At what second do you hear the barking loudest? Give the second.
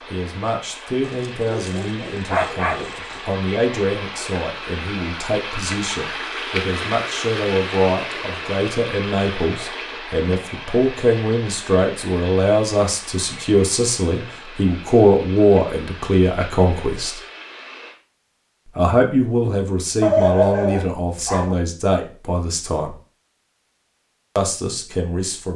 20 s.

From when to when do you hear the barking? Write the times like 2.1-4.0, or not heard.
1.0-3.2, 20.0-21.6.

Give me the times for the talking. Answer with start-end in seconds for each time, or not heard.
0.1-17.2, 18.8-22.9, 24.4-25.5.